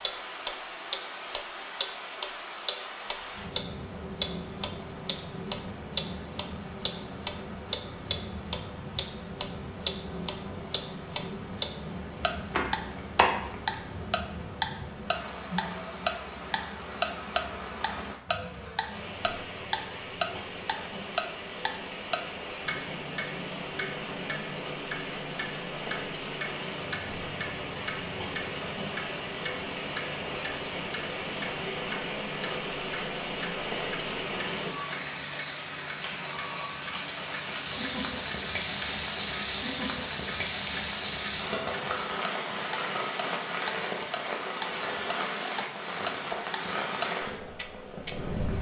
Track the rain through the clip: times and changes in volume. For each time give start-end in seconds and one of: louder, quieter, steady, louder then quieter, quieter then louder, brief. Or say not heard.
0.0-48.5 louder.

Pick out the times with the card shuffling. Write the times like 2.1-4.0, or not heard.
12.2-13.8.